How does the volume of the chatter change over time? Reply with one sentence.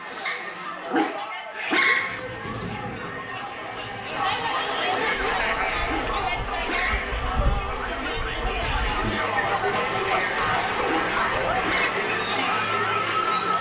The loudness of the chatter goes up.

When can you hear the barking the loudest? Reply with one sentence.
The volume of the barking peaks at 2 seconds.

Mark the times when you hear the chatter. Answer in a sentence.
You can hear the chatter from 0.0 to 13.5 s.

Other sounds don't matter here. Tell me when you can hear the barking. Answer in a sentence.
You can hear the barking from 0.2 to 2.2 s, from 5.2 to 7.2 s and from 10.2 to 11.9 s.